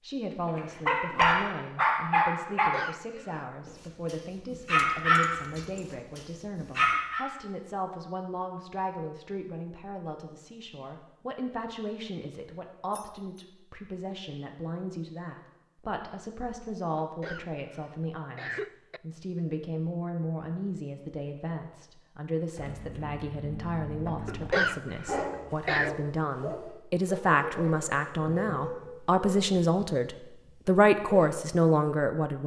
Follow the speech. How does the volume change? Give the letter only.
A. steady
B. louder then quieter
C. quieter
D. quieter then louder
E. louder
E.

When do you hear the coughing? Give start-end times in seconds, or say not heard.
2.5-3.5, 16.9-19.0, 24.2-25.9.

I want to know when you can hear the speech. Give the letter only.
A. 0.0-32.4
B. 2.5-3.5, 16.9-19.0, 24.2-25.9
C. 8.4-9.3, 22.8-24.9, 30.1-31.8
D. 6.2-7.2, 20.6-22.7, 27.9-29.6
A.